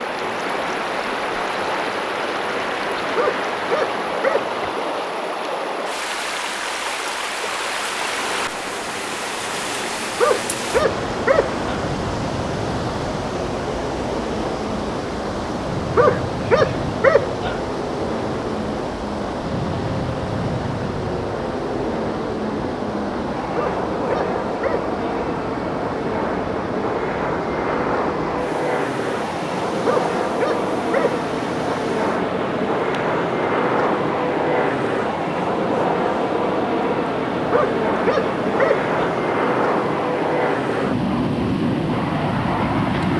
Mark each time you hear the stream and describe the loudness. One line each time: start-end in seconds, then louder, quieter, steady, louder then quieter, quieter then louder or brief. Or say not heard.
0.0-43.1 quieter.